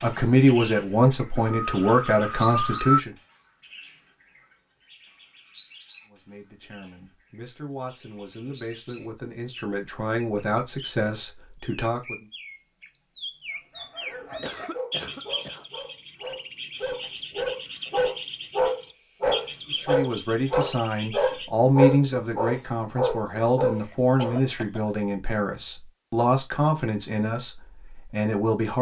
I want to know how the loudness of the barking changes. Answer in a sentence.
The volume of the barking goes up.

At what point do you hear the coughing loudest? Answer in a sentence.
The volume of the coughing peaks at 3 seconds.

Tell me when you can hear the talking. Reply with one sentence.
You can hear the talking from 0.0 to 3.1 s, from 6.0 to 12.2 s and from 19.7 to 28.7 s.